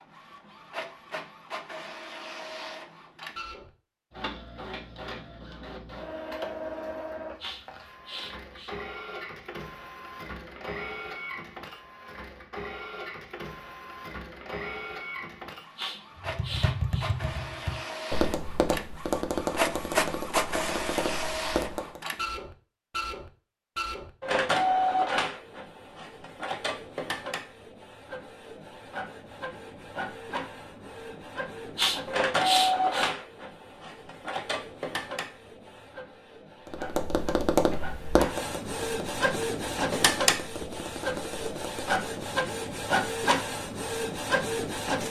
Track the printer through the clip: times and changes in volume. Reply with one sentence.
The printer can be heard from 0.0 to 45.0 s, getting louder.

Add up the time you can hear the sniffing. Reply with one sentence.
You can hear the sniffing for 4 seconds altogether.